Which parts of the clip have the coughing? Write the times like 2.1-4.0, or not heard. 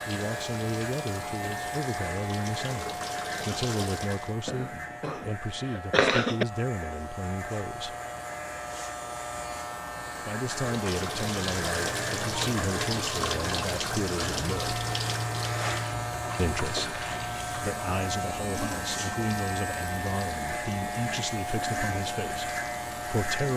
4.5-6.5.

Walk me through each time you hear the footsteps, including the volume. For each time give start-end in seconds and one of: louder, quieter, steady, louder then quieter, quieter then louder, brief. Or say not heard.
not heard.